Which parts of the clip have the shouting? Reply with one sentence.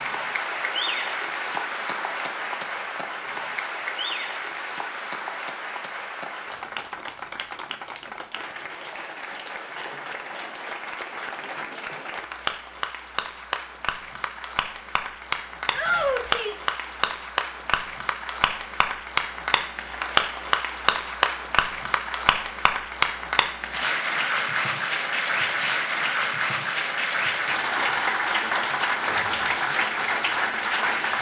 The shouting can be heard from 15.7 to 16.7 s.